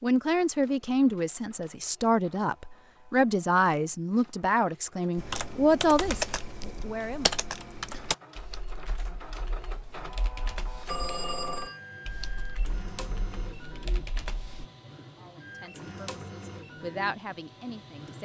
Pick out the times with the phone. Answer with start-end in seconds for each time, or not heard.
10.8-11.8.